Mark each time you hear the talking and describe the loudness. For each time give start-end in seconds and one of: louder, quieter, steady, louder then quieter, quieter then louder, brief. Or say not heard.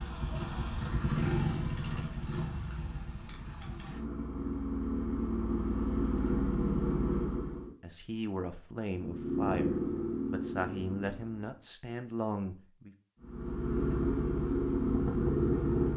7.8-12.9 steady.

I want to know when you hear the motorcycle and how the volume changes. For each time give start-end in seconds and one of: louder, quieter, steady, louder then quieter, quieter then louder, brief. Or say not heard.
0.0-7.7 quieter then louder
8.9-11.3 brief
13.2-15.9 brief.